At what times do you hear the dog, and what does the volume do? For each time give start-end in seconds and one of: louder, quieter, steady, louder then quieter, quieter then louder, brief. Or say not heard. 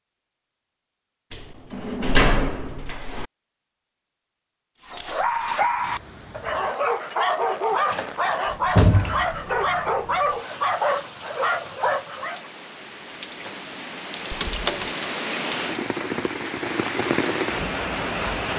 4.8-12.5 steady.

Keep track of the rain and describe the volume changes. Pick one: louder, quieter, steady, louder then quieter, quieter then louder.
louder.